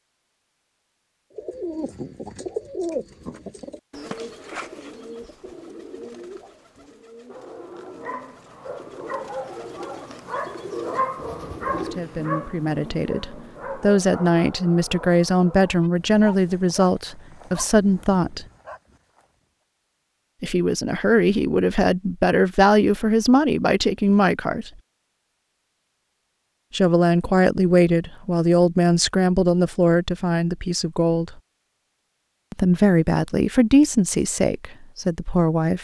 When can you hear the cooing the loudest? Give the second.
3 s.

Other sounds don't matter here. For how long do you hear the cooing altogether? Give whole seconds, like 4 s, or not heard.
11 s.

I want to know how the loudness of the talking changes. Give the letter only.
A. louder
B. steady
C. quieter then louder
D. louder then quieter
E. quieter
B.